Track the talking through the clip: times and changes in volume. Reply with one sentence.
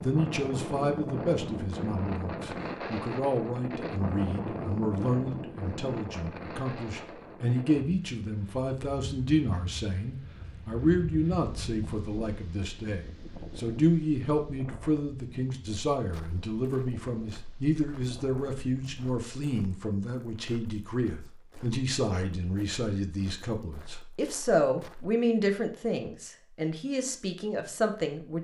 The talking can be heard from 0.0 to 28.3 s, at a steady volume.